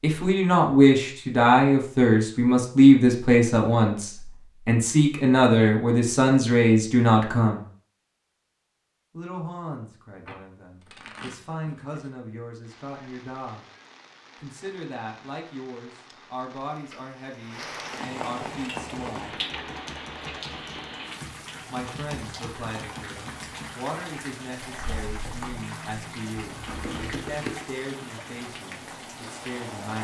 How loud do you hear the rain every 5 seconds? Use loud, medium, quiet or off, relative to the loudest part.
off, off, quiet, loud, loud, loud.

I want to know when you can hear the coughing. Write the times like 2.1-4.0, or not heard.
not heard.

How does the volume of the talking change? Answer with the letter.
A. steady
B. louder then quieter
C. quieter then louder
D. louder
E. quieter
E.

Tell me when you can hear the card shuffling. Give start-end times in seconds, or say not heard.
10.2-12.1, 27.1-27.7.